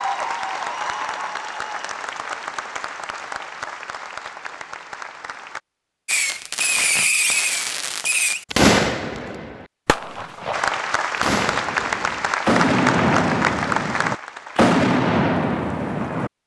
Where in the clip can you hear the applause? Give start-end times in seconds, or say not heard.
0.0-5.6, 10.5-14.8.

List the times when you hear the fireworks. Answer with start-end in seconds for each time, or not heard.
6.0-16.3.